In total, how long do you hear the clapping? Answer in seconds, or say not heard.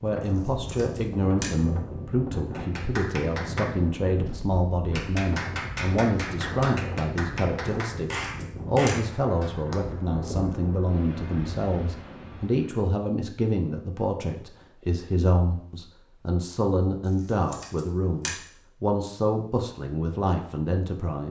7 s.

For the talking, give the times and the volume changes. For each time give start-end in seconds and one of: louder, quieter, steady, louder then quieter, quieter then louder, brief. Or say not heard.
0.0-21.2 steady.